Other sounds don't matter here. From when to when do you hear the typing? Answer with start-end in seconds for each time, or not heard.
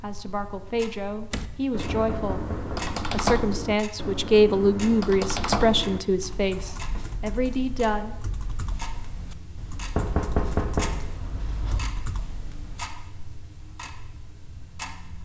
1.3-12.8.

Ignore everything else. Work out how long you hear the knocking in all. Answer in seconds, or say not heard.
3 s.